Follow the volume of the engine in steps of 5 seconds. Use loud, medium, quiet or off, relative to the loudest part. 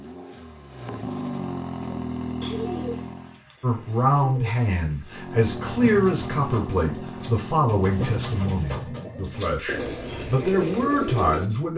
loud, loud, off.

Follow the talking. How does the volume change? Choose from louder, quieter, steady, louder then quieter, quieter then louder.
quieter then louder.